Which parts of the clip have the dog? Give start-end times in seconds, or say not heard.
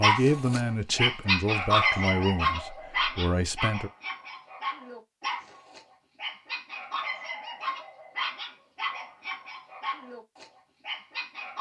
0.0-11.5.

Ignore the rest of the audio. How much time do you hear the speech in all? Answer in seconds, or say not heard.
4 s.